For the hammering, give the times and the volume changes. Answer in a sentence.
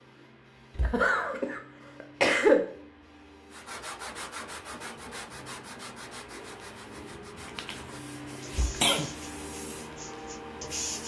You can't hear the hammering here.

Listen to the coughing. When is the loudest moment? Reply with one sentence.
The volume of the coughing peaks at 2 seconds.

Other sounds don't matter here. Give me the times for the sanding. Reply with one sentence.
You can hear the sanding from 3.5 to 11.0 s.